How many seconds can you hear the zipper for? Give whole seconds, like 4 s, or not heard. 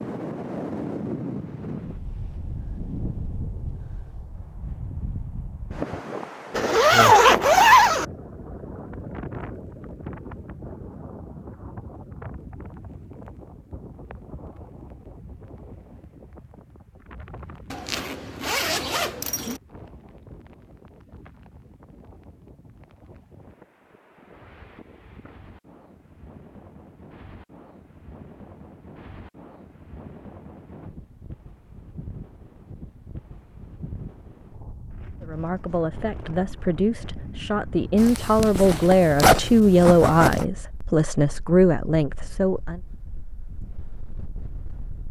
6 s.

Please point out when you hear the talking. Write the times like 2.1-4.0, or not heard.
35.2-42.8.